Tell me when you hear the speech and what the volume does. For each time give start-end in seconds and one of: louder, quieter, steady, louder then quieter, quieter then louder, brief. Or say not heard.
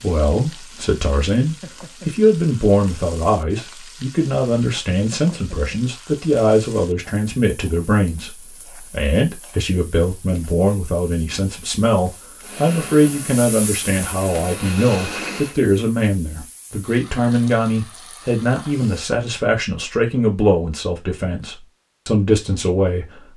0.0-23.2 steady.